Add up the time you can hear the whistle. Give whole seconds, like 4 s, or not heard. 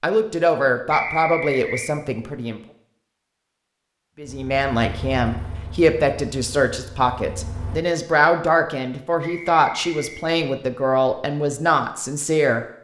2 s.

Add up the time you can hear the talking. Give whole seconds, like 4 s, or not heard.
11 s.